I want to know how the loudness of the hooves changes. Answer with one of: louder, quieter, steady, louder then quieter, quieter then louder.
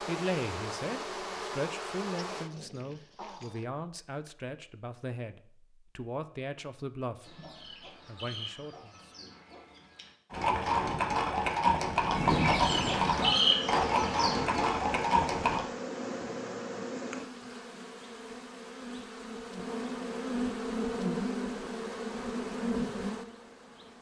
steady.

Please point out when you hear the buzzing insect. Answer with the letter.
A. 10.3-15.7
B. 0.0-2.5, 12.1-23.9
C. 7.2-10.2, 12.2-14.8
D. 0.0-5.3
B.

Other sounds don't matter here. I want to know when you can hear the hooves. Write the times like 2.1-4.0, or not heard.
10.3-15.7.